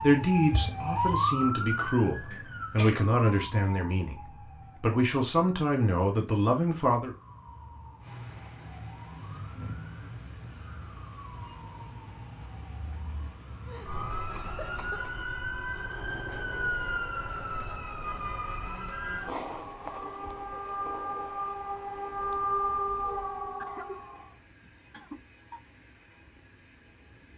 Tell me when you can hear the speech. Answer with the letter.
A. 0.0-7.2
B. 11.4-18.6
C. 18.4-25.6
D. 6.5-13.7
A.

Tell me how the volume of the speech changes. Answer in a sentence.
The loudness of the speech stays about the same.